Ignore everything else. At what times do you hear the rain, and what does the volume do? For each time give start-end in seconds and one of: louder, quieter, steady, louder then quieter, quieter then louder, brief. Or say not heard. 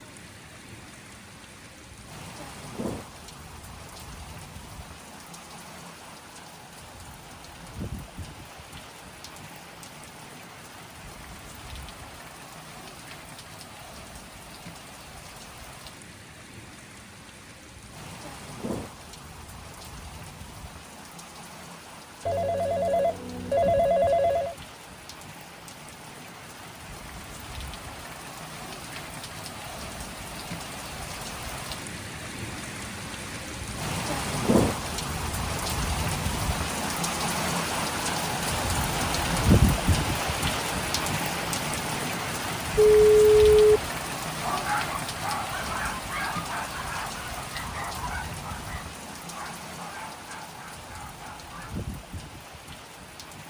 0.0-53.4 louder then quieter.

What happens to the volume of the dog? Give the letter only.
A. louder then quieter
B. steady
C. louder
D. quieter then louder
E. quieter
E.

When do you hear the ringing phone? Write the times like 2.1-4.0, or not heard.
22.2-24.6, 42.8-43.8.